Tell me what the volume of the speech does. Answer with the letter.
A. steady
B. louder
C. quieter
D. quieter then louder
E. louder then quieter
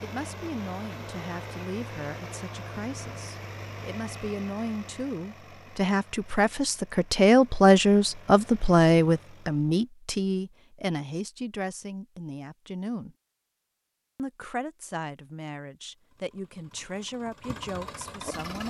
E.